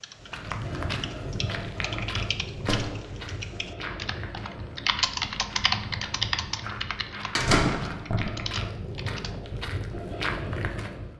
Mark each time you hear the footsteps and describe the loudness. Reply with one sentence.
You can hear the footsteps from 0.1 to 11.1 s, getting quieter then louder.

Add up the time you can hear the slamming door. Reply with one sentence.
You can hear the slamming door for 2 seconds altogether.